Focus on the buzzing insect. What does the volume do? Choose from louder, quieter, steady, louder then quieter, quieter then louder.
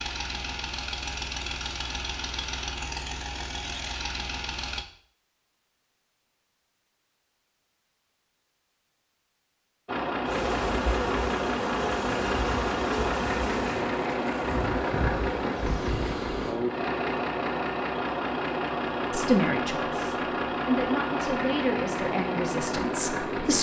steady.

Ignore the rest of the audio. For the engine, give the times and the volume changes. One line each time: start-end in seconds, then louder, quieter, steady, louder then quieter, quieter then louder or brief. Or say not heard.
0.0-4.8 steady
9.8-23.5 steady.